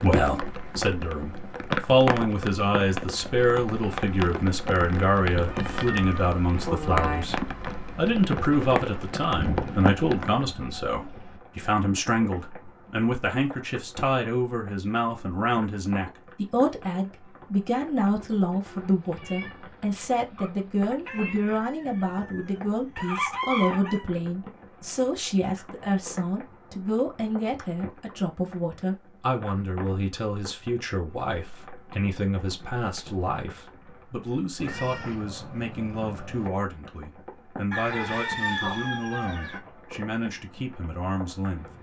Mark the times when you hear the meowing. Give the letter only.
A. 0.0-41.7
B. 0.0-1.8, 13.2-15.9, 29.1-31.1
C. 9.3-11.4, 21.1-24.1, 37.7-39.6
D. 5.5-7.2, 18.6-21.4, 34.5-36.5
D.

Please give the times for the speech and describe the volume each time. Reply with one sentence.
The speech can be heard from 0.0 to 41.7 s, getting quieter.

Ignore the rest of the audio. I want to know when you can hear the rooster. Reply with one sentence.
You can hear the rooster from 9.3 to 11.4 s, from 21.1 to 24.1 s and from 37.7 to 39.6 s.